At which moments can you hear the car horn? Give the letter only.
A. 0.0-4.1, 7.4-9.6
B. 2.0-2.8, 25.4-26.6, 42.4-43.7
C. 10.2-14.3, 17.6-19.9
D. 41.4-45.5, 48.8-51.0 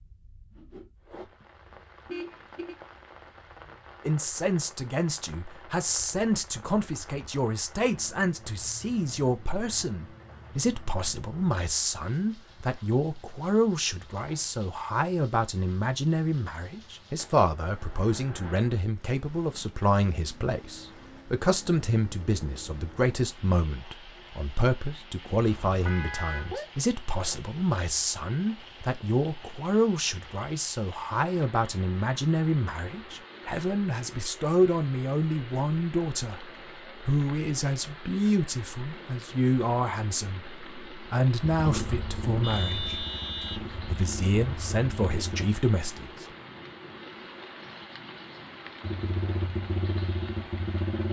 B.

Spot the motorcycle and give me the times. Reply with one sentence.
You can hear the motorcycle from 41.4 to 45.5 s and from 48.8 to 51.0 s.